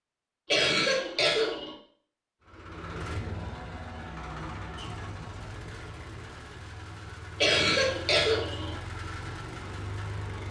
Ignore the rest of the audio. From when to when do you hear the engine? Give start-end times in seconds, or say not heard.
2.4-10.4.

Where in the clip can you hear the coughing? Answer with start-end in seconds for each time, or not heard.
0.5-1.8, 7.4-8.8.